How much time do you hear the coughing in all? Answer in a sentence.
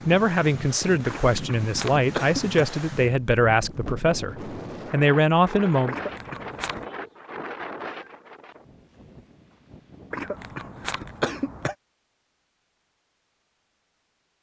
The coughing can be heard for 4 seconds in total.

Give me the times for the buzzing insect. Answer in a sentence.
The buzzing insect can't be heard in this clip.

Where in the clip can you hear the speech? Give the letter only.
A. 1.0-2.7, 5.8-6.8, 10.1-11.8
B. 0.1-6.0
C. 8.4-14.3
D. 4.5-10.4
B.